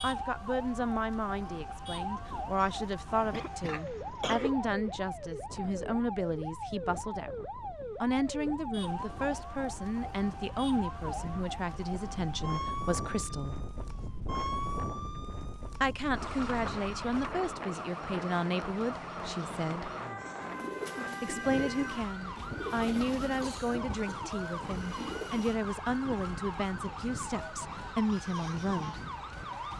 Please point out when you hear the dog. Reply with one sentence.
The dog can't be heard in this clip.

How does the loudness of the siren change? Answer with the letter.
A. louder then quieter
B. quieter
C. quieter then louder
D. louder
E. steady
E.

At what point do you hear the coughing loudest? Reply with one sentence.
The volume of the coughing peaks at 4 seconds.